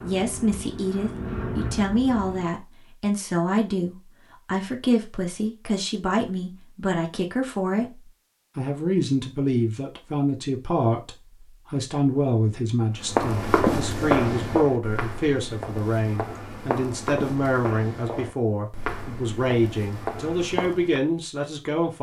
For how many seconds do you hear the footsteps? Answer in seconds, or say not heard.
8 s.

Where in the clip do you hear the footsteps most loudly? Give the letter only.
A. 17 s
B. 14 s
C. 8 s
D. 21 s
B.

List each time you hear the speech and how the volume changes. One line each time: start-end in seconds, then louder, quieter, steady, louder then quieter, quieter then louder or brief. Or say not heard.
0.0-21.9 steady.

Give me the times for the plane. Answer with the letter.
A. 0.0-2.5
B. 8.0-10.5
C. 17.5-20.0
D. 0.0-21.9
A.